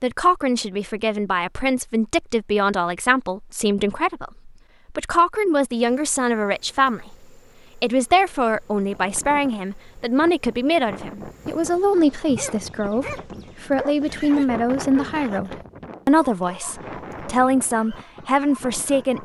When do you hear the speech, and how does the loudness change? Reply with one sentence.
You can hear the speech from 0.0 to 7.2 s, at a steady volume; and from 7.8 to 19.2 s, at a steady volume.